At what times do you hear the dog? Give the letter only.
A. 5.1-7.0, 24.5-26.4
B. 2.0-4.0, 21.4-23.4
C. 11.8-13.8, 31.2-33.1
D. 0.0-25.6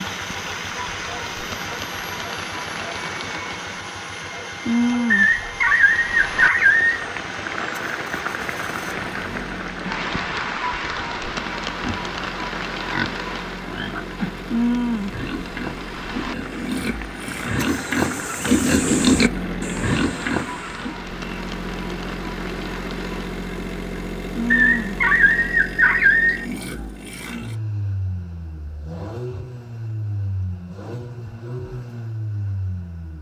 A.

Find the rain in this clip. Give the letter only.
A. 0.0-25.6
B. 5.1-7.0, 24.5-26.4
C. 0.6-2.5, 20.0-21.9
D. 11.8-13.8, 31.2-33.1
A.